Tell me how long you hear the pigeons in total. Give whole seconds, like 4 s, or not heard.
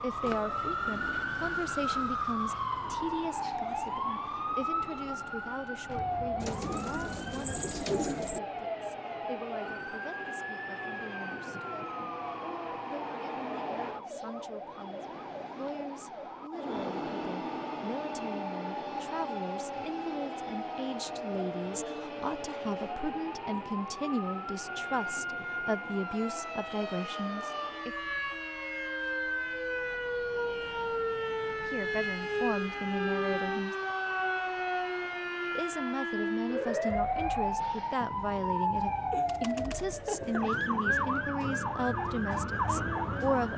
2 s.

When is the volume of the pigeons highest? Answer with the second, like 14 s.
8 s.